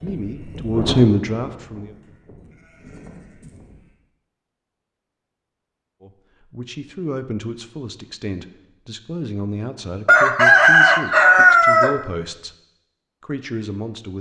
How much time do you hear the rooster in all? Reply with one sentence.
You can hear the rooster for 2 seconds altogether.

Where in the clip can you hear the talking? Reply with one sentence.
The talking can be heard from 0.0 to 1.9 s, from 6.0 to 12.6 s and from 13.2 to 14.1 s.